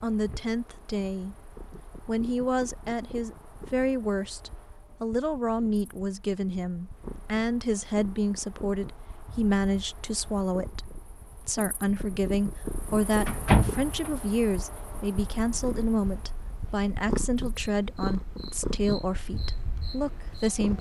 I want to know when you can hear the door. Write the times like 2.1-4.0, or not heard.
13.2-14.2.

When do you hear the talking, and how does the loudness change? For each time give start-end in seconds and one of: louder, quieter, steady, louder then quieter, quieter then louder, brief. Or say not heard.
0.0-1.4 brief
2.0-20.7 steady.